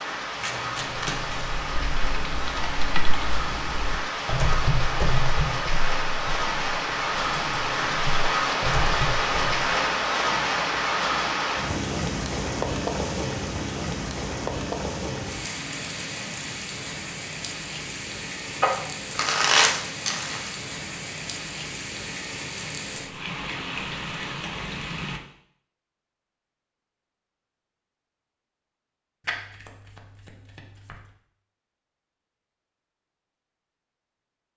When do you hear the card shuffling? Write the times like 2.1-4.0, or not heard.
0.4-1.6, 18.6-20.6, 29.2-31.1.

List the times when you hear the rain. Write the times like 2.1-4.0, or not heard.
0.0-25.2.